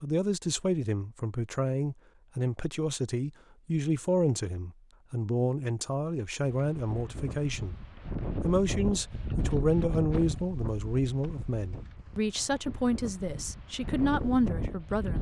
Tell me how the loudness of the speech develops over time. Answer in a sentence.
The volume of the speech stays about the same.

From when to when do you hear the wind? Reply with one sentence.
You can hear the wind from 6.4 to 15.1 s.